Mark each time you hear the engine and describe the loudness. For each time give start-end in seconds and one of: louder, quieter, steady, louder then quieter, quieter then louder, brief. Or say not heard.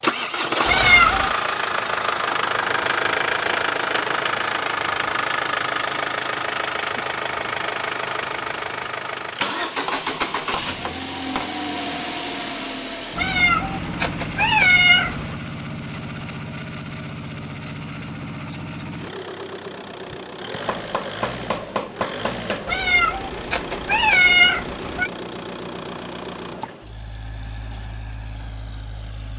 0.0-29.3 quieter.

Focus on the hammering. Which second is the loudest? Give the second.
22 s.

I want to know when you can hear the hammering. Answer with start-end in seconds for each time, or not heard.
9.8-11.5, 20.6-22.6.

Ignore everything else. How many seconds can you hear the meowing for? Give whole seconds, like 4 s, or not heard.
5 s.